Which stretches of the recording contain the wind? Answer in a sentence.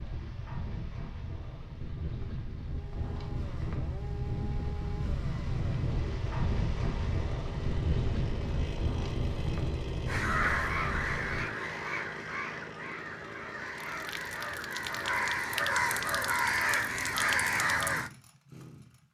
You can hear the wind from 0.0 to 11.5 s.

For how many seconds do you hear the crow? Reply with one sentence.
You can hear the crow for 8 seconds altogether.